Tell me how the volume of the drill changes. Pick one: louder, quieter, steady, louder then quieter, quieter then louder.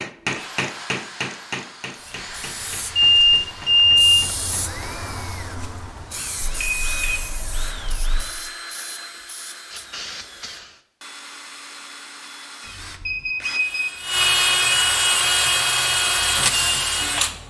louder.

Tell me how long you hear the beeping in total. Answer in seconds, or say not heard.
5 s.